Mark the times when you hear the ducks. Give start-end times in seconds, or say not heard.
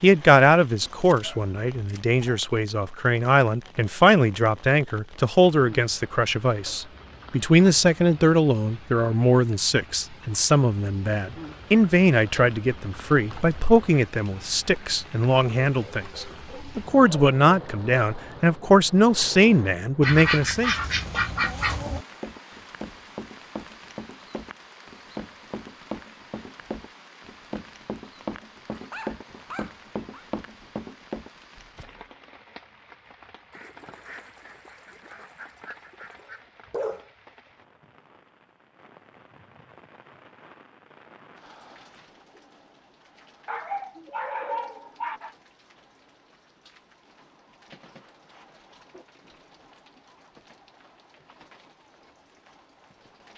20.0-22.1, 33.5-36.5.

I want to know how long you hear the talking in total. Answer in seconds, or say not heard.
21 s.